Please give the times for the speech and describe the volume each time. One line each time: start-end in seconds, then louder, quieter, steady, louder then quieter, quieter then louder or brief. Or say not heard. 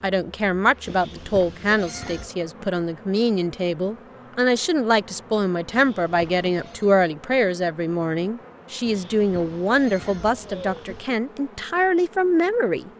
0.0-12.9 steady.